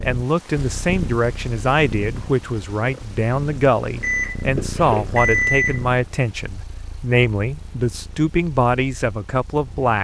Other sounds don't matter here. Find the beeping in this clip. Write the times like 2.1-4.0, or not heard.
4.0-5.8.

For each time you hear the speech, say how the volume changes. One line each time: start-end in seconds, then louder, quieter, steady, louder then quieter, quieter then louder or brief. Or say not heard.
0.0-9.9 steady.